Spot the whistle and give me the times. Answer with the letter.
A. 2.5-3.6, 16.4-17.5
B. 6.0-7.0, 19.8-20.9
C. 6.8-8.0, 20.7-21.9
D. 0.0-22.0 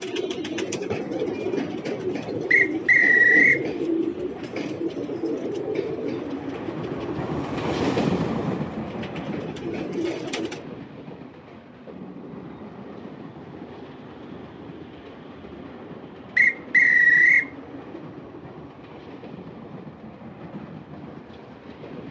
A.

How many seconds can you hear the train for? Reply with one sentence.
You can hear the train for 22 seconds altogether.